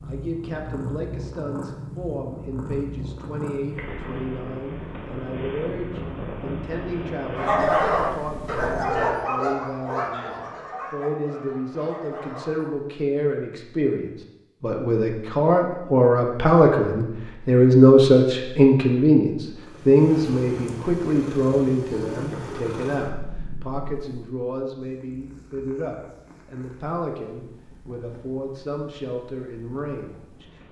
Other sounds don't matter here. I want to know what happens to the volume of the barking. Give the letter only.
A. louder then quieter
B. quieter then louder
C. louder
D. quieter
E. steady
D.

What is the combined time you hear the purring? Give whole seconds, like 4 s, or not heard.
20 s.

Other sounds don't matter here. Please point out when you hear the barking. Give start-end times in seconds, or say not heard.
7.3-12.8.